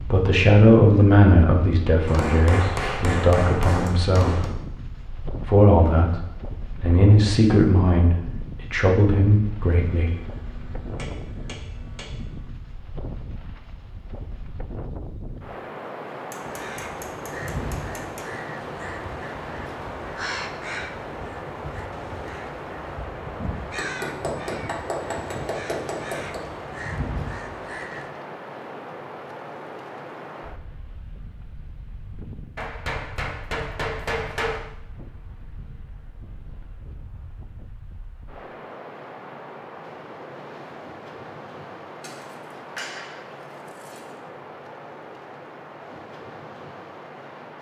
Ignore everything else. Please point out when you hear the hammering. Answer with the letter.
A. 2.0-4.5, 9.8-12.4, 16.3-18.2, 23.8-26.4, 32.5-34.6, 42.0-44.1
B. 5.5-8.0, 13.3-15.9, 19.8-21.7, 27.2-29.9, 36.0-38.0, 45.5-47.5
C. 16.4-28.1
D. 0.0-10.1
A.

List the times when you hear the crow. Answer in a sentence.
The crow can be heard from 16.4 to 28.1 s.